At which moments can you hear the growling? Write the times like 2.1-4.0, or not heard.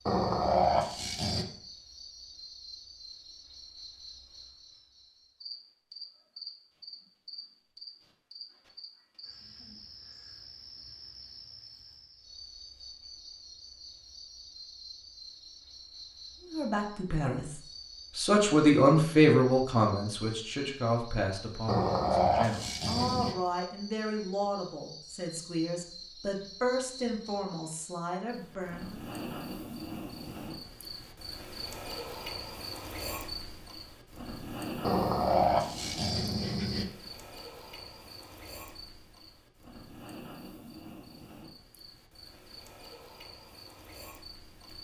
0.1-1.4, 21.6-23.4, 34.8-36.9.